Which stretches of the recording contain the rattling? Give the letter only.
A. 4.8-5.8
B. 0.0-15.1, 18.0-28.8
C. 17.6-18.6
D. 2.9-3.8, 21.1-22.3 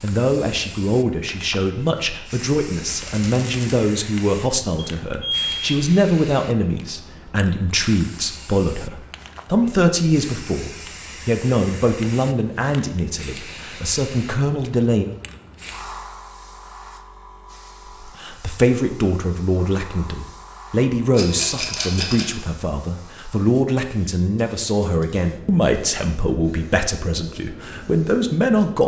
D.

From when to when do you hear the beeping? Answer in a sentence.
You can hear the beeping from 4.8 to 5.8 s.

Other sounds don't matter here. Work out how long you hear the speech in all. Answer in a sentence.
The speech can be heard for 26 seconds in total.